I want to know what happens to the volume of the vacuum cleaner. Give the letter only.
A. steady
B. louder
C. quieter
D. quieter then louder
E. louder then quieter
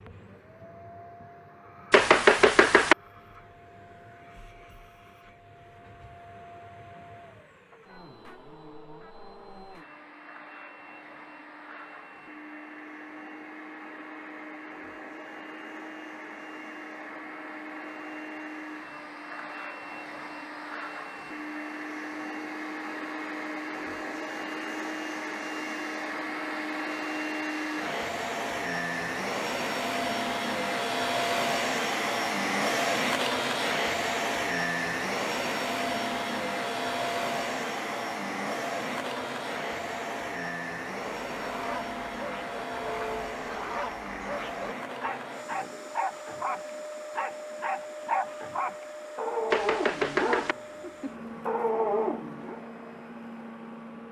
E.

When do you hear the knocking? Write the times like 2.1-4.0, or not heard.
1.9-3.0, 49.5-50.5.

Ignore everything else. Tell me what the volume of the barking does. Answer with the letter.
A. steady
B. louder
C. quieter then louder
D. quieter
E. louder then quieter
B.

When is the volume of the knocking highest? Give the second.
2 s.